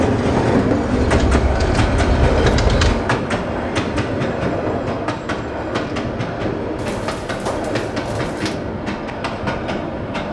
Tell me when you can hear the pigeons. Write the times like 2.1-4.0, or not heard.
0.9-3.0, 6.8-8.6.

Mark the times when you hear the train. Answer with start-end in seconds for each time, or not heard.
0.0-10.2.